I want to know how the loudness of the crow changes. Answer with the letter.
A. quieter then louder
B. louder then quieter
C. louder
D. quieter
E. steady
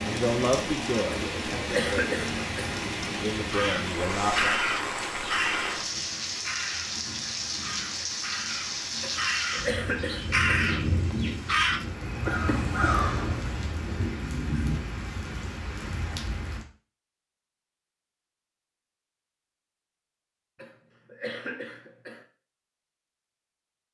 A.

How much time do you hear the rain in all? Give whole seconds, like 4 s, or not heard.
17 s.